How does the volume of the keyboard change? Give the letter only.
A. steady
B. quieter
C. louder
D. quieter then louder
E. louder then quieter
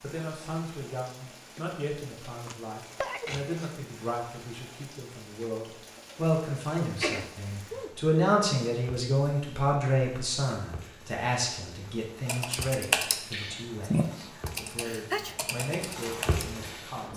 B.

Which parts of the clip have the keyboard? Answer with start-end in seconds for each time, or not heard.
12.2-17.1.